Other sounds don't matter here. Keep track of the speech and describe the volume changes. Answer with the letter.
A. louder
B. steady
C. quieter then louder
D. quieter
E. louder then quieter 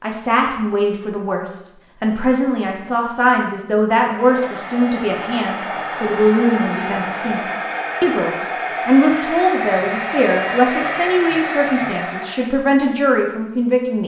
B.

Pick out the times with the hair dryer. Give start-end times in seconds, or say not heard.
4.0-12.5.